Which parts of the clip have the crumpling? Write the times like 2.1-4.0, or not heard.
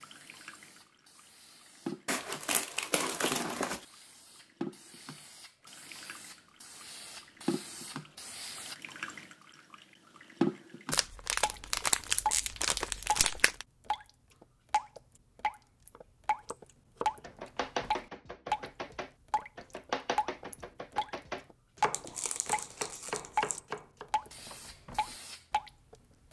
2.0-3.8, 10.9-13.7, 21.9-23.6.